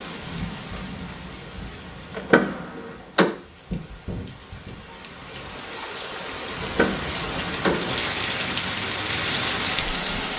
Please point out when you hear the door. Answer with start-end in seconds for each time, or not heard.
2.1-3.3, 6.6-8.0.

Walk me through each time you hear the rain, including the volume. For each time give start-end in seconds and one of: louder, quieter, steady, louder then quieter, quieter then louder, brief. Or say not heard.
0.0-10.3 louder.